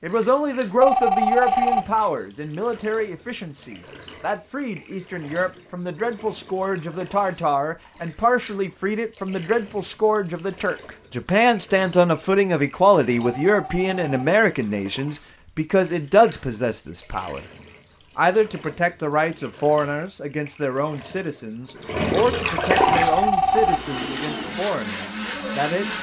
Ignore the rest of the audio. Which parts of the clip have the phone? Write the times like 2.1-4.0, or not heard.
0.8-1.9, 13.4-14.2, 22.8-23.8.